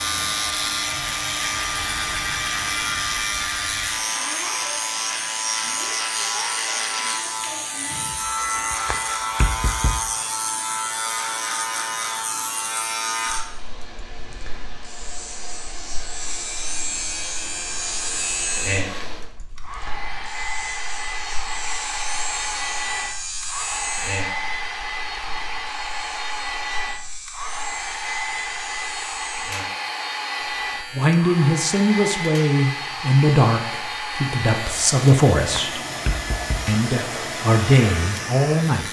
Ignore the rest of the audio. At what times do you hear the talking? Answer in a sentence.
The talking can be heard from 30.5 to 35.8 s and from 36.6 to 38.8 s.